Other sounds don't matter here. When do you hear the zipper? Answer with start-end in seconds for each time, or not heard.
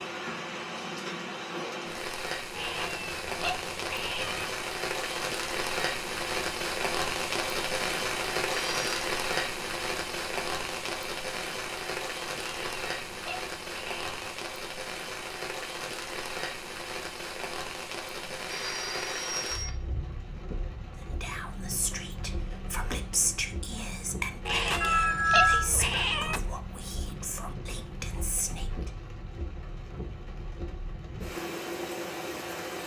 not heard.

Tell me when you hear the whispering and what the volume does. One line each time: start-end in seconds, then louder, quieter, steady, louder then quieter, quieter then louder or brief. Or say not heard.
21.1-28.9 louder then quieter.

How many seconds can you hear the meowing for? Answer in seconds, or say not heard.
6 s.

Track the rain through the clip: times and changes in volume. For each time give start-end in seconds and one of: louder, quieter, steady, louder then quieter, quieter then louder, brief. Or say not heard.
0.0-32.8 quieter.